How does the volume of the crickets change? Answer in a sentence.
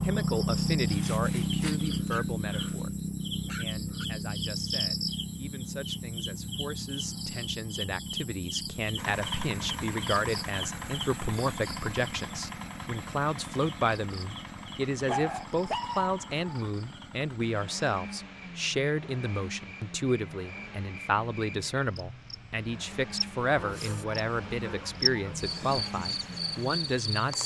The loudness of the crickets goes down, then up.